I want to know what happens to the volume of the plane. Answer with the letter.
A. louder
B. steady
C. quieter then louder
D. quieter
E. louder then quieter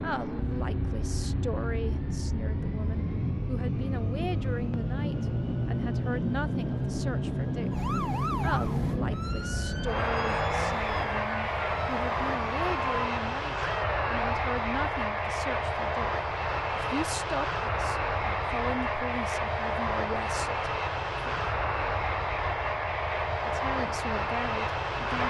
B.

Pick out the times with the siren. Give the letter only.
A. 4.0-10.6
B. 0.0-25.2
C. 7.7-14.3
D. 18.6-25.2
C.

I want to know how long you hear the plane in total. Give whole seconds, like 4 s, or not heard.
25 s.